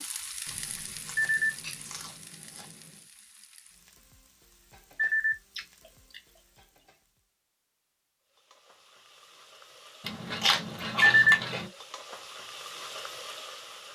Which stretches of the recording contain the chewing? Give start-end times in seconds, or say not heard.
0.5-3.0, 5.0-6.7, 10.0-11.7.